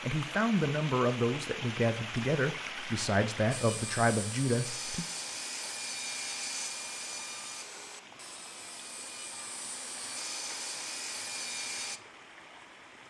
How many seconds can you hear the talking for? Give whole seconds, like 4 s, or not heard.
5 s.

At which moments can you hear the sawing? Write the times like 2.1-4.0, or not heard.
3.5-12.0.